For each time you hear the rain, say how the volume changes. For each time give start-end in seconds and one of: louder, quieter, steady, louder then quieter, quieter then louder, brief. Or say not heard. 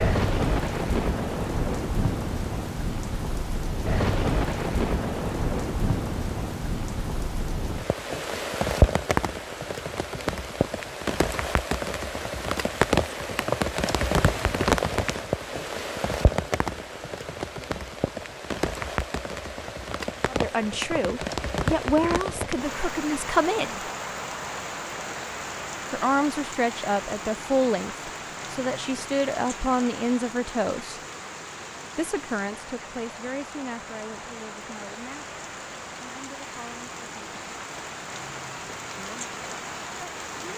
0.0-40.5 quieter.